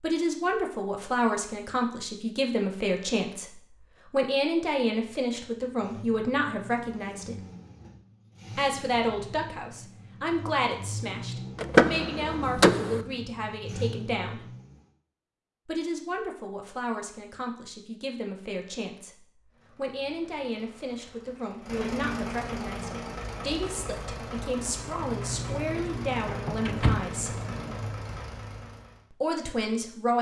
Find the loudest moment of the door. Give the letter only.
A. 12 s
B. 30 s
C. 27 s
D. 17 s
A.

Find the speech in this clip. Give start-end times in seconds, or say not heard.
0.0-7.3, 8.6-14.4, 15.7-27.4, 29.1-30.1.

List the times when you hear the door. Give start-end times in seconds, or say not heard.
11.6-13.0, 26.2-27.9.